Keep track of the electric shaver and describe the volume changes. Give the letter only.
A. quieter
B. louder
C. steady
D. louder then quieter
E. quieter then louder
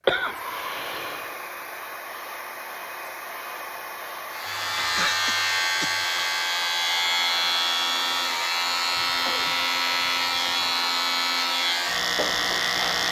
C.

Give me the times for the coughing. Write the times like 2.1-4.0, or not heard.
0.1-1.3, 4.5-6.0, 8.9-10.8.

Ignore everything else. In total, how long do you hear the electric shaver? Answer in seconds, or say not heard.
9 s.